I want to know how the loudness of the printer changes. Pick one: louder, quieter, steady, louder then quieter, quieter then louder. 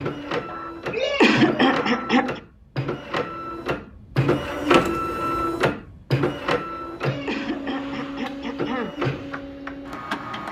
louder then quieter.